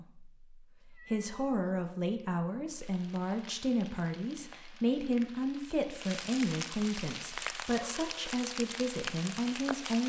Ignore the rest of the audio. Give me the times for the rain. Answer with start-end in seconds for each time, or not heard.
2.8-10.0.